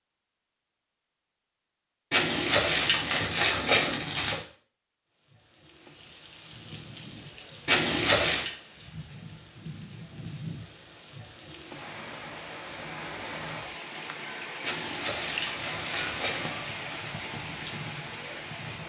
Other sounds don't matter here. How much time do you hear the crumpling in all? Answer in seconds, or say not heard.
5 s.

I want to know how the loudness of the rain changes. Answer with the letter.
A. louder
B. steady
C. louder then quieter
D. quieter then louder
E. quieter
A.